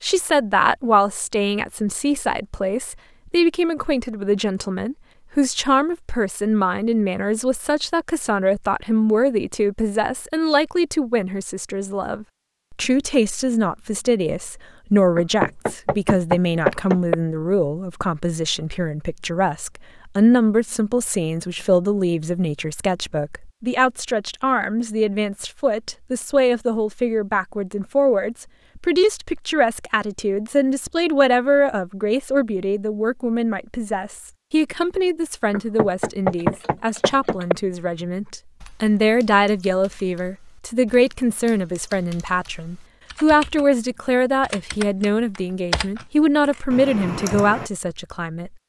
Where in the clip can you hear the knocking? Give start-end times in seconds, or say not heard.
15.2-17.1, 35.5-37.5.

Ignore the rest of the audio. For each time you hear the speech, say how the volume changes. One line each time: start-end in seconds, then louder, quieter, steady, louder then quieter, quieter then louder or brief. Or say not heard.
0.0-48.5 steady.